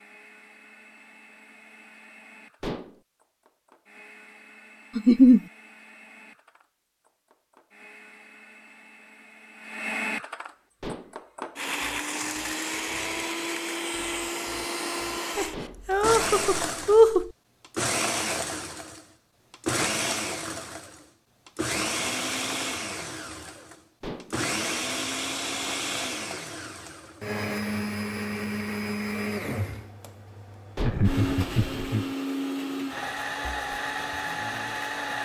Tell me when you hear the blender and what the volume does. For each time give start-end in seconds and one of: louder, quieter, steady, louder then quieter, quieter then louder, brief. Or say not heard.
0.0-35.1 louder.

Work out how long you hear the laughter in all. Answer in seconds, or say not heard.
4 s.